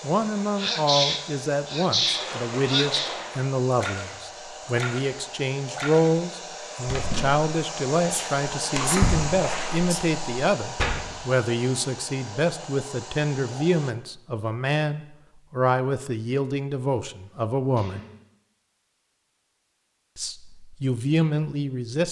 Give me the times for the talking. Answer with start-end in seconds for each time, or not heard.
0.0-18.0, 20.1-22.0.